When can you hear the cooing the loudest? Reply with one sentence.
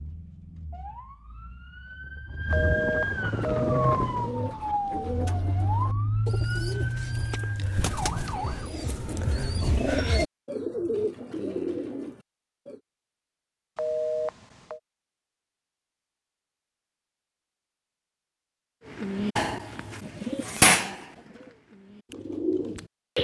The loudest moment of the cooing is at 21 seconds.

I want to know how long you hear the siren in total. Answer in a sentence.
You can hear the siren for 9 seconds altogether.